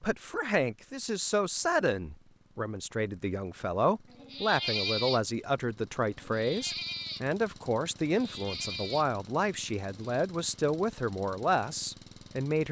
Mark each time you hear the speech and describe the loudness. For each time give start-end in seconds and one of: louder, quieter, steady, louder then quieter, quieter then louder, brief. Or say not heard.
0.0-12.6 steady.